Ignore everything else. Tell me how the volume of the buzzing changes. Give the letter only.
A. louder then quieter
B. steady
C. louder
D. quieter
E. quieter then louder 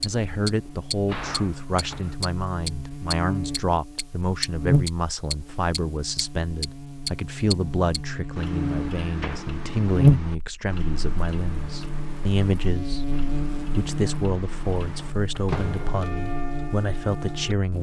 A.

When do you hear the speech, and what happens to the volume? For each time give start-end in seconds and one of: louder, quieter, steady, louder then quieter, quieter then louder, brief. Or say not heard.
0.0-17.7 steady.